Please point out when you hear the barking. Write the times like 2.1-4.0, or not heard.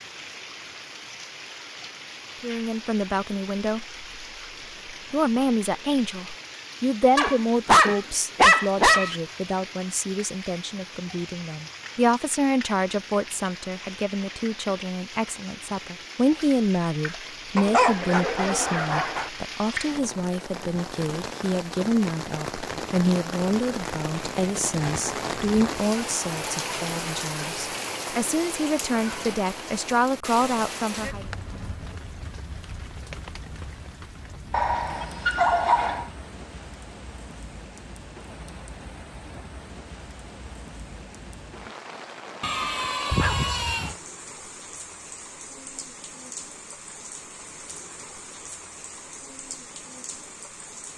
7.2-9.2, 17.6-19.3, 34.5-36.0, 42.4-44.0.